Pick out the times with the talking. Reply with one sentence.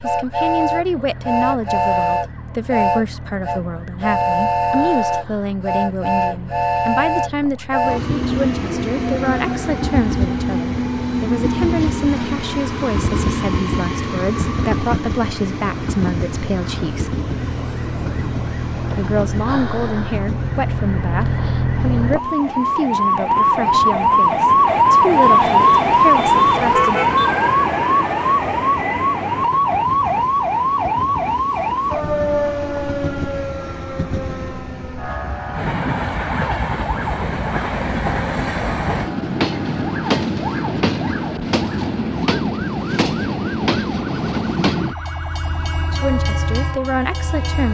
The talking can be heard from 0.0 to 17.1 s, from 18.9 to 26.9 s and from 45.9 to 47.7 s.